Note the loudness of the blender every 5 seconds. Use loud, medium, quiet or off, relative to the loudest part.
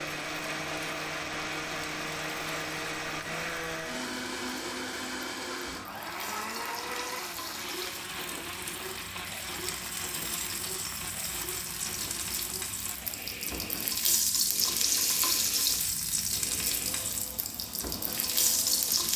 loud, loud, medium, medium.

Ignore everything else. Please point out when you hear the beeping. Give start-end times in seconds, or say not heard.
not heard.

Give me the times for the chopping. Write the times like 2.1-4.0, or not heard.
not heard.